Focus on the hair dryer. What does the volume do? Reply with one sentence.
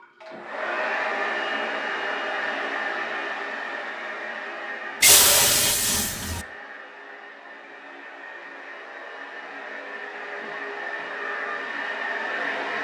The volume of the hair dryer goes down, then up.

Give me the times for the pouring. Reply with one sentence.
You can hear the pouring from 5.0 to 6.5 s.